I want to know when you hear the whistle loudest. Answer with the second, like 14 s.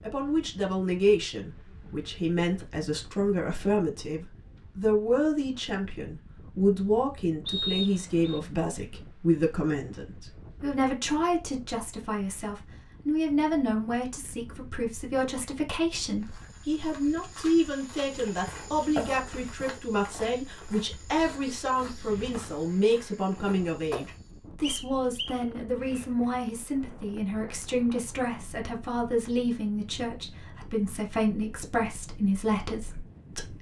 8 s.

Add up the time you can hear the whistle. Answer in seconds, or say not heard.
2 s.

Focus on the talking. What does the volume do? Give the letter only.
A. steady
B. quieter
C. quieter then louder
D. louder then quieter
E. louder
A.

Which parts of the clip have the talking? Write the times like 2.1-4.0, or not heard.
0.0-33.5.